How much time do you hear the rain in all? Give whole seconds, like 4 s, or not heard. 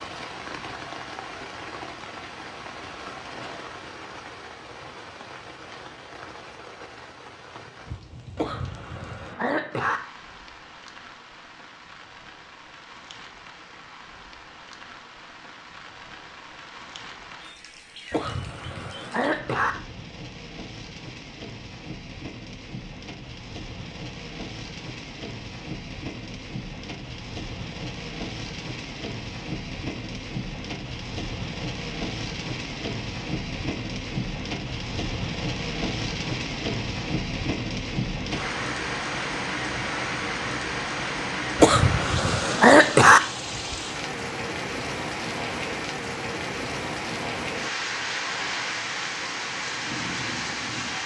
51 s.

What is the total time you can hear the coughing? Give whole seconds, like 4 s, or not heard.
5 s.